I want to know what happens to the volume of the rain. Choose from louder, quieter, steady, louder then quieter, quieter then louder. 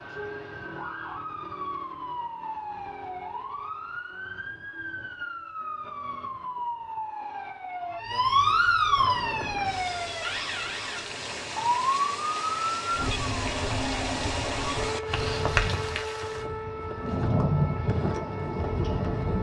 louder.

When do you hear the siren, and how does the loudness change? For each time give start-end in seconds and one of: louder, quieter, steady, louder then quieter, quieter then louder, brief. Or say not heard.
0.0-19.3 louder then quieter.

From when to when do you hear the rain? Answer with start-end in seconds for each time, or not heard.
8.9-19.3.